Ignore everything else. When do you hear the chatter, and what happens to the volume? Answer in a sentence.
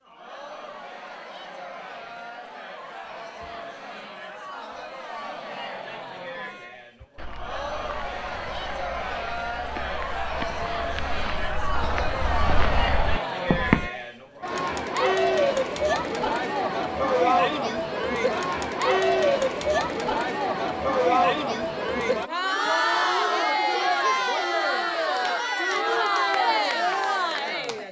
You can hear the chatter from 0.0 to 27.8 s, getting louder.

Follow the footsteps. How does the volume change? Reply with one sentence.
The volume of the footsteps goes up.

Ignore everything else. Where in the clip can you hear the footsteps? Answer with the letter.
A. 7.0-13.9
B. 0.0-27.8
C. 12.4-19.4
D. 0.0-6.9
A.